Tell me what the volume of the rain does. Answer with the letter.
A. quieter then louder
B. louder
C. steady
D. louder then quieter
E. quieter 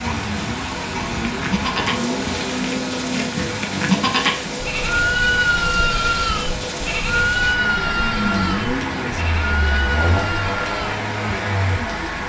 C.